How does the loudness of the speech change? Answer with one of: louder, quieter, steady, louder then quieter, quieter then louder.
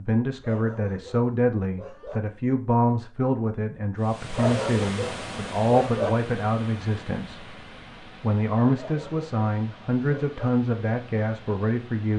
steady.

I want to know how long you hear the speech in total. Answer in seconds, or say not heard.
12 s.